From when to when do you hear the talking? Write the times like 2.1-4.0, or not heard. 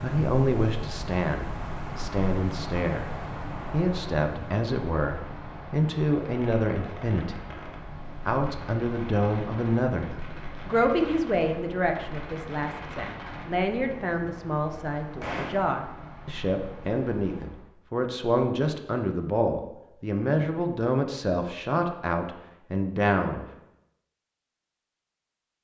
0.0-3.0, 3.7-7.7, 8.2-23.4.